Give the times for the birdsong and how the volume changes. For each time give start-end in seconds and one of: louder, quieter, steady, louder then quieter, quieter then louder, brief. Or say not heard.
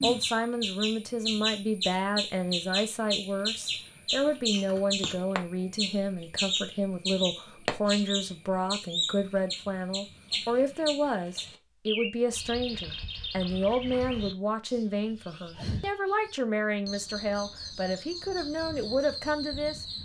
0.0-20.0 quieter.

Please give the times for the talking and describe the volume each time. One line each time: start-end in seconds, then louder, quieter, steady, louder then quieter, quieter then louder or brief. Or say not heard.
0.0-19.9 steady.